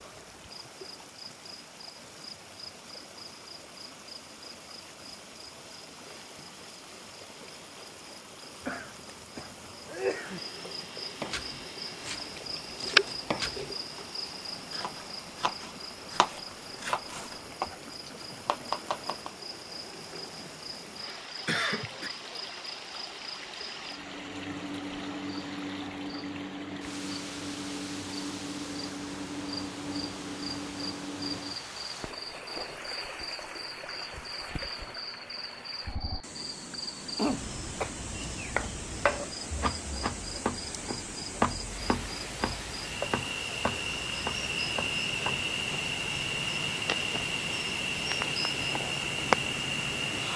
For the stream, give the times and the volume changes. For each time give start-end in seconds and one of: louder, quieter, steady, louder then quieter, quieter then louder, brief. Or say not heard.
0.0-50.3 louder.